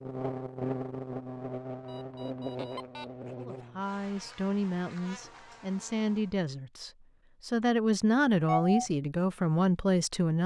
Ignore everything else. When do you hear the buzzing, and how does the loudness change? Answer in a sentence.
The buzzing can be heard from 0.0 to 6.3 s, getting quieter.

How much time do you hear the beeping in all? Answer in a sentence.
You can hear the beeping for 2 seconds altogether.